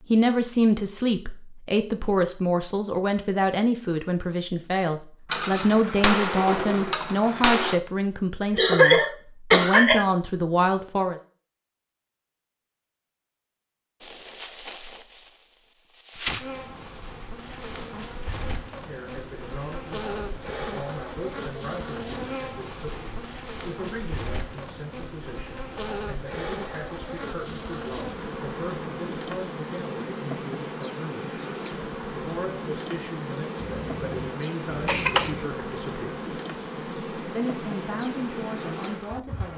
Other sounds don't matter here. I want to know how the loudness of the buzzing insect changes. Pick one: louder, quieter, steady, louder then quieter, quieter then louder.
steady.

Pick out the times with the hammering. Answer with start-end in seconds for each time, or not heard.
5.3-7.8.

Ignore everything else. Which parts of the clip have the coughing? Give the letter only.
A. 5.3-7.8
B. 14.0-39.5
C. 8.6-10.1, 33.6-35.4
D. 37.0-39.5
C.